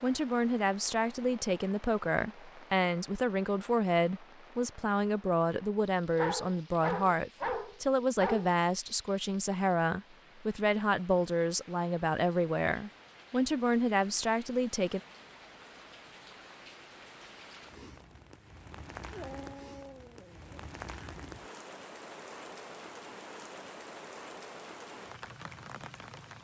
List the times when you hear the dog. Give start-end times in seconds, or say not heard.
6.0-8.5, 19.1-20.6.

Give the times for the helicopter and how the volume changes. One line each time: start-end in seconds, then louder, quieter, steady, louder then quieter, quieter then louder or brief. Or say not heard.
not heard.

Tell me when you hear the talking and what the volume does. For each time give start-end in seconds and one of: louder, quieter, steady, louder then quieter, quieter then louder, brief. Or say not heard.
0.0-15.0 steady.